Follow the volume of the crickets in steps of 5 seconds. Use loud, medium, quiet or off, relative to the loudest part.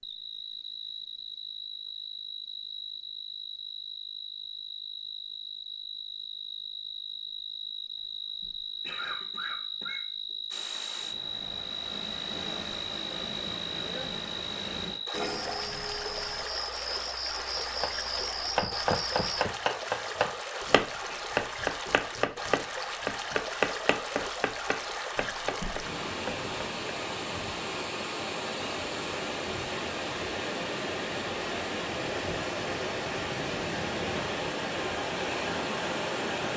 medium, loud, loud, loud, off, off, off, off.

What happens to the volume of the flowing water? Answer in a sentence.
The volume of the flowing water goes up.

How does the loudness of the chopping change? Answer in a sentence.
The loudness of the chopping goes down.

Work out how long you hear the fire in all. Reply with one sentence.
The fire can't be heard in this clip.